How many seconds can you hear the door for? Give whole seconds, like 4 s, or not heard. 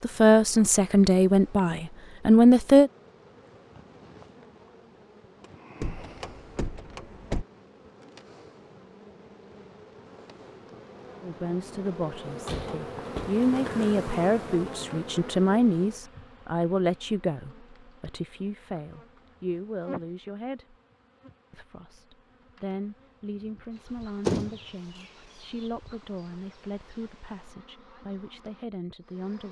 4 s.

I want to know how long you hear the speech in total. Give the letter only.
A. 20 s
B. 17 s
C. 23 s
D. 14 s
A.